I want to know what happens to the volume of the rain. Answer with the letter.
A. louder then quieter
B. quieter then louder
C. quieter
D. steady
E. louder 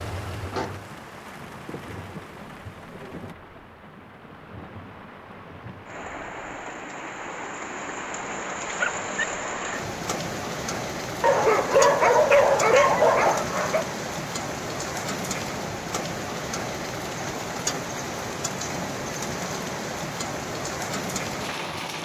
E.